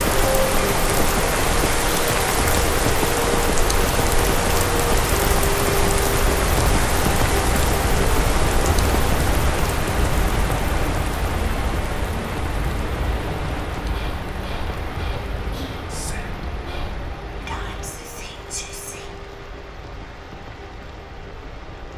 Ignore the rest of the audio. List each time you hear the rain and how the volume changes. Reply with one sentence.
You can hear the rain from 0.0 to 21.9 s, getting quieter.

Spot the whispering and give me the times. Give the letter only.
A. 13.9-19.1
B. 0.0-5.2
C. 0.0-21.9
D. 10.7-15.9
A.